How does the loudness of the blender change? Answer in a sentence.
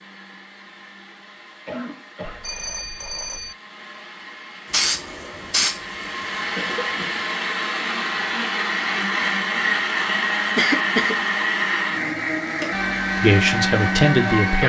The volume of the blender goes up.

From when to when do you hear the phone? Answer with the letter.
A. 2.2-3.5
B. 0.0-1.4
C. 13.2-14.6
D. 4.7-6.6
A.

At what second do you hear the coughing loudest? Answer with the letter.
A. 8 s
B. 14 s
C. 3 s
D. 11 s
D.